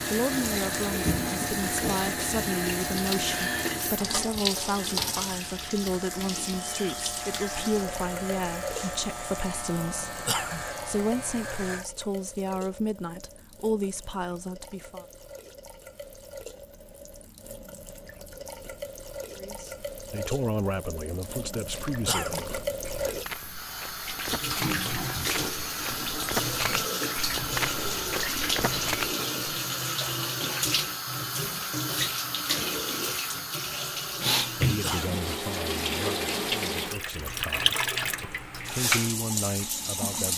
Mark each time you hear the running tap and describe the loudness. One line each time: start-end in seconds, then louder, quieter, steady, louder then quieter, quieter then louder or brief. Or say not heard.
0.0-40.3 quieter then louder.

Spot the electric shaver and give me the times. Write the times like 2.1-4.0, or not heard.
0.0-11.8.